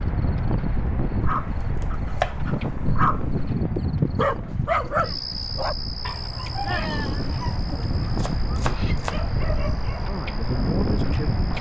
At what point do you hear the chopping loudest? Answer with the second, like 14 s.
2 s.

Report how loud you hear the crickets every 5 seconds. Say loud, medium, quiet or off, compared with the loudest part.
loud, medium, quiet.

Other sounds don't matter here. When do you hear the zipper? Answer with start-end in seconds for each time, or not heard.
not heard.